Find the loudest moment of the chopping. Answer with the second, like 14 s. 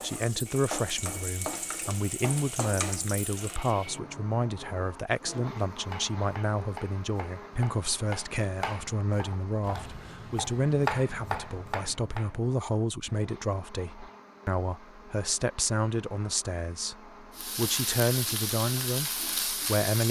11 s.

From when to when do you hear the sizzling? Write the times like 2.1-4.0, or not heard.
0.0-3.8, 17.4-20.0.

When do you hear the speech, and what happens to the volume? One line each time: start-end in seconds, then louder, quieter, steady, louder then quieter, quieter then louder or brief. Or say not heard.
0.0-20.0 steady.